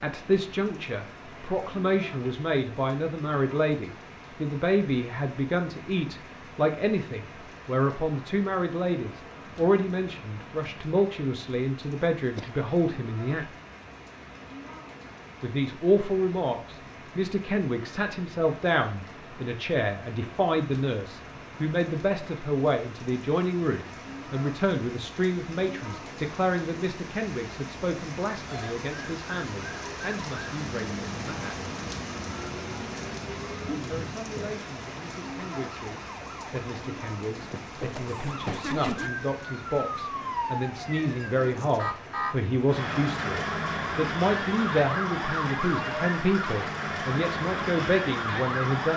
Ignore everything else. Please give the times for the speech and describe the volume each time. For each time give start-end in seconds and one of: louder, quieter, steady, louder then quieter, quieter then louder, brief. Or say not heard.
0.0-13.4 steady
15.4-31.6 quieter
33.9-48.9 louder.